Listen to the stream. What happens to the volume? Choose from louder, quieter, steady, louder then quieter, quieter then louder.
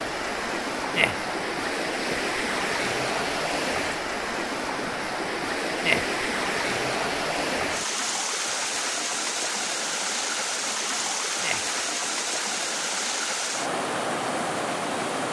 steady.